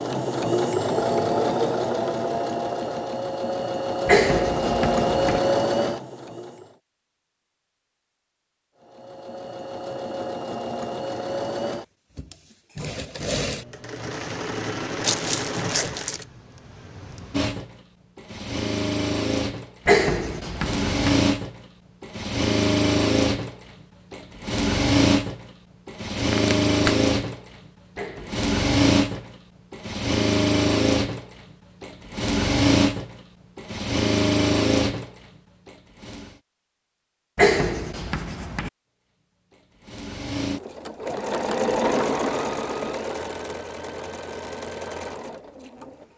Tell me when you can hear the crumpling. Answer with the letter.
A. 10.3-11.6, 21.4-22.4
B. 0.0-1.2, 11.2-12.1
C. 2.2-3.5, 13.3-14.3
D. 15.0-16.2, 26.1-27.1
D.